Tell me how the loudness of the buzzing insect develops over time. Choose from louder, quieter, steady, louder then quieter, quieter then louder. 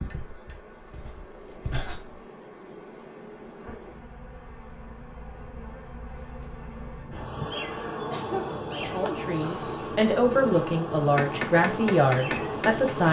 louder.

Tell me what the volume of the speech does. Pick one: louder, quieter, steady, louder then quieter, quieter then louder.
louder.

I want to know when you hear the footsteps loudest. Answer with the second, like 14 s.
2 s.